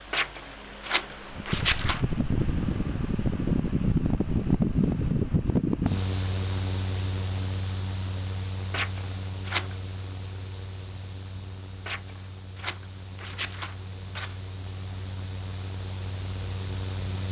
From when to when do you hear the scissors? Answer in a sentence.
The scissors can be heard from 0.1 to 2.0 s, from 8.7 to 9.8 s and from 11.8 to 14.3 s.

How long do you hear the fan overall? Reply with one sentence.
You can hear the fan for 17 seconds altogether.